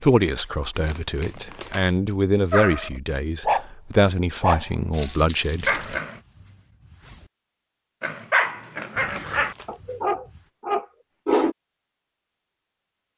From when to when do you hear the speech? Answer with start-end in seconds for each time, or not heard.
0.0-5.8.